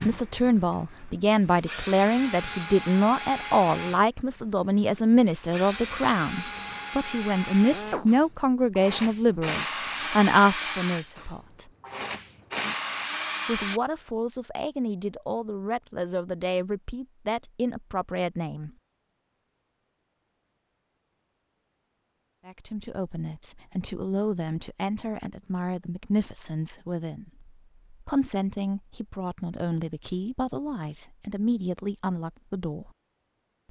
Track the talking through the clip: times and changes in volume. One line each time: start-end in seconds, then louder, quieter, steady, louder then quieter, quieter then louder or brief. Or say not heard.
0.0-11.7 steady
13.4-18.7 steady
22.4-32.9 steady.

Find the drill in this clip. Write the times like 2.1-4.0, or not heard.
0.0-13.8.